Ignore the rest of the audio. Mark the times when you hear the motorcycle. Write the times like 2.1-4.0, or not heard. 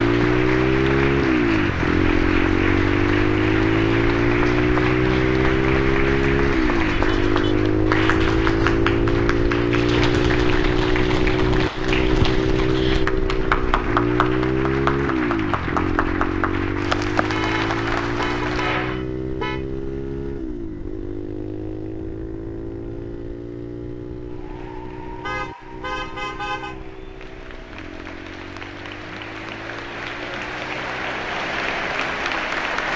0.0-32.9.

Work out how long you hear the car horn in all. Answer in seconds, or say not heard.
5 s.